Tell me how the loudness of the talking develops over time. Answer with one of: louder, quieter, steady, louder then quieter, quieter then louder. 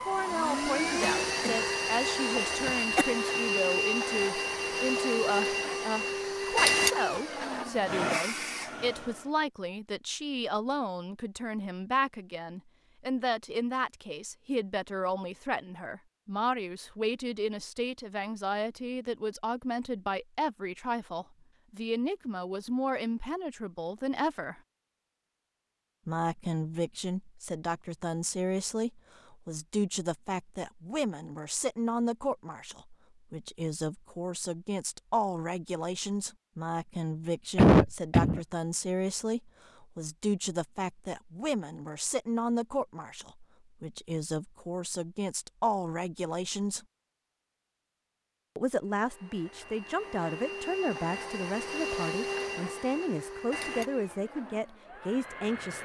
steady.